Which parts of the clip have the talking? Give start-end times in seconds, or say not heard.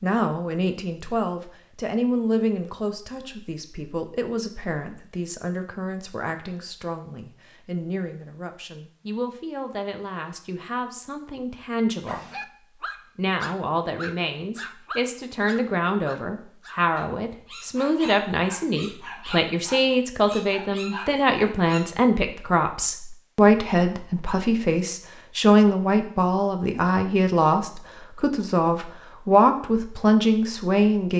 0.0-12.2, 13.2-31.1.